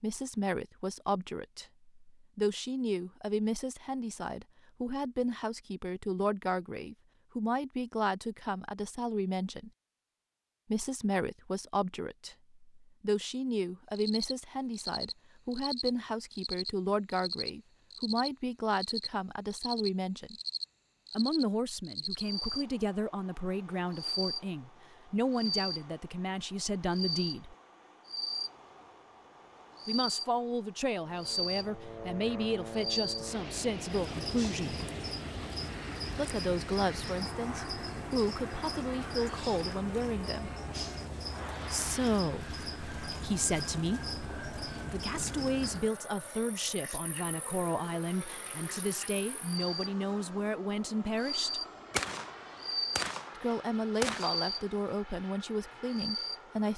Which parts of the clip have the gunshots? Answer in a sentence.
The gunshots can be heard from 51.9 to 54.6 s.